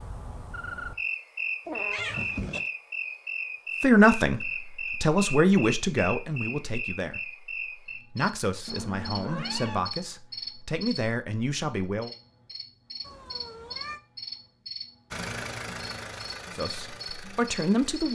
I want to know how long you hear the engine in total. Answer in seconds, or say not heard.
3 s.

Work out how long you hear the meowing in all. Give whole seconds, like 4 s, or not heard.
3 s.